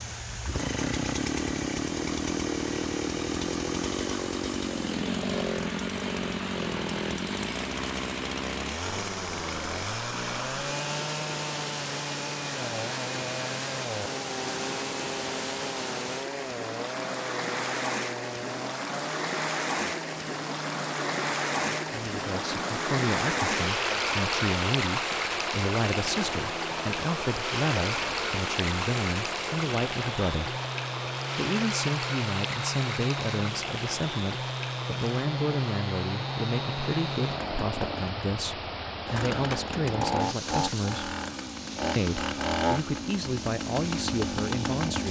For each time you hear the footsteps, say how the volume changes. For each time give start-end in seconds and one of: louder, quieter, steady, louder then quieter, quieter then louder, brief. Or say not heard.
not heard.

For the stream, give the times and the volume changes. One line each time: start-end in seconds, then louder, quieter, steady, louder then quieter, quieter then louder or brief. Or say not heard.
0.0-45.0 louder then quieter.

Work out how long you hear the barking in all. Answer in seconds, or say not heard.
not heard.